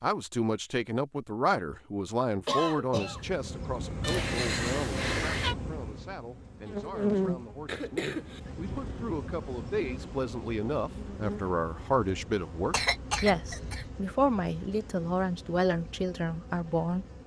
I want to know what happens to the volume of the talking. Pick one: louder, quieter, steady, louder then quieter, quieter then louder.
quieter then louder.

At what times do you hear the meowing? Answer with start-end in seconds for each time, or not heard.
4.0-5.5.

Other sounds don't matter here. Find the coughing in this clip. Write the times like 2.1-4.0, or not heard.
2.5-3.3, 7.7-8.5, 12.7-13.9.